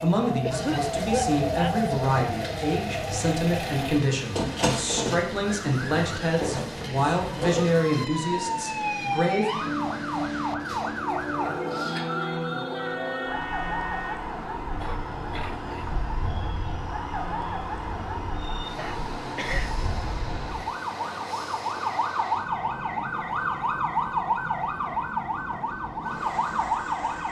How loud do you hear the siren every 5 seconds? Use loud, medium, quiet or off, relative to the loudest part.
loud, loud, loud, medium, loud, loud.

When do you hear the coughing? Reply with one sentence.
The coughing can be heard from 0.4 to 1.9 s, from 14.8 to 15.8 s and from 18.8 to 19.8 s.